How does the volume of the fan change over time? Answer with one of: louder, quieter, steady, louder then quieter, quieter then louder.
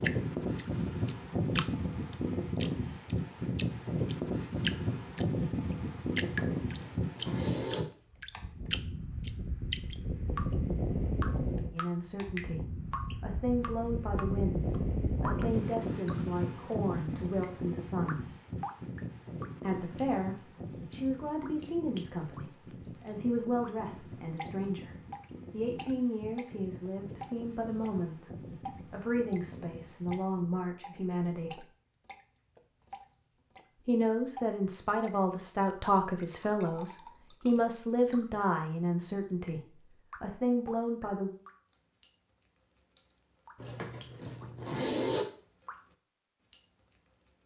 quieter.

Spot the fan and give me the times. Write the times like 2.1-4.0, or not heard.
0.0-30.6.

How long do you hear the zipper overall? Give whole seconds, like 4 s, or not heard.
3 s.